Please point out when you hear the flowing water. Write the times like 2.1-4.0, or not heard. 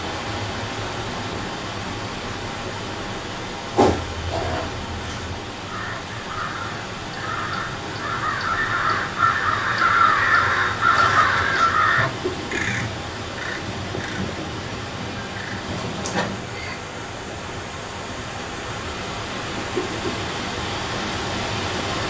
0.0-22.0.